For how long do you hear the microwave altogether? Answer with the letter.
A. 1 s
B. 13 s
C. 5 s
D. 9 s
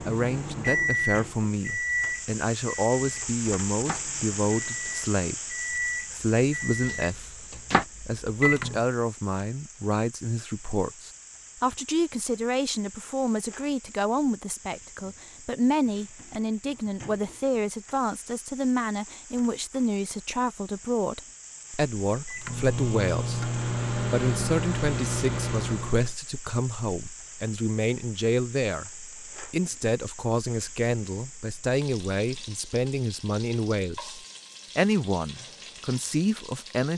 B.